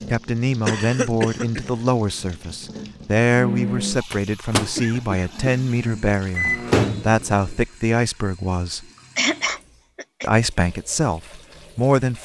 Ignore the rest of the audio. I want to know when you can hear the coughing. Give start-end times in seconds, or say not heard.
0.7-1.9, 4.8-6.4, 8.7-10.3.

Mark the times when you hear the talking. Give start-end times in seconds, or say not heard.
0.1-8.8, 10.2-12.2.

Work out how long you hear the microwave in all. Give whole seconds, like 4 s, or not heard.
4 s.